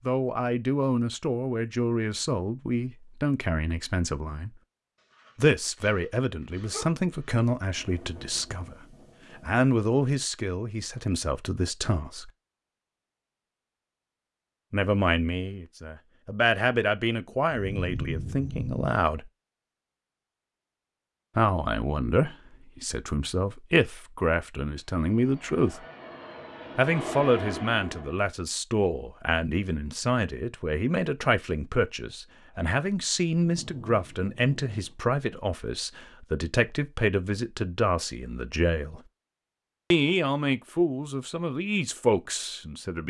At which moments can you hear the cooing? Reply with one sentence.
You can't hear the cooing here.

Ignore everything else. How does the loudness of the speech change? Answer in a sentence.
The loudness of the speech stays about the same.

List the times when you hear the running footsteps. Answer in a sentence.
The running footsteps can't be heard in this clip.